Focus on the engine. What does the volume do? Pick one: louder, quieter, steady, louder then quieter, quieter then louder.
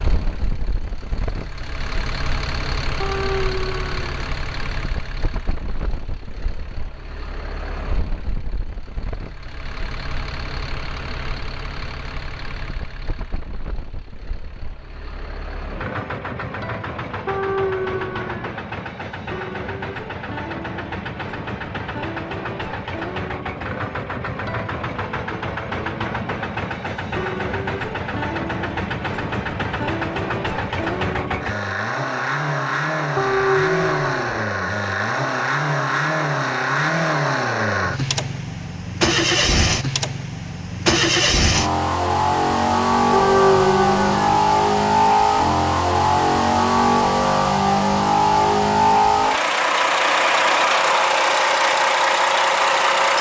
louder.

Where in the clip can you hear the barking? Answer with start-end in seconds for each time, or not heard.
3.0-4.1, 17.2-18.6, 33.1-34.5, 43.1-44.4.